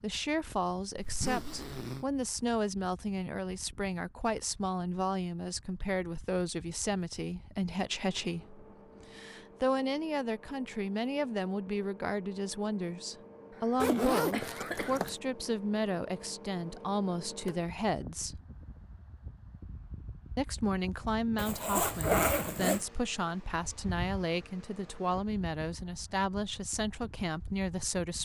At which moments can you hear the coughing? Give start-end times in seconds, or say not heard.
13.5-15.0.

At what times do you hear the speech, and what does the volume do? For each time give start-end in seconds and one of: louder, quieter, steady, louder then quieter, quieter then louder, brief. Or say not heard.
0.0-18.4 steady
20.4-28.2 steady.